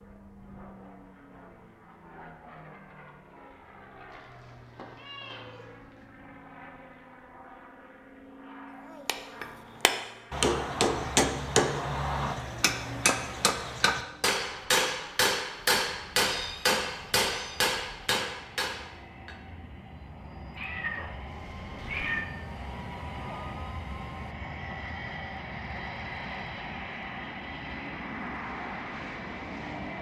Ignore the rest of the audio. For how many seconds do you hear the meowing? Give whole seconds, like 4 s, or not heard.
5 s.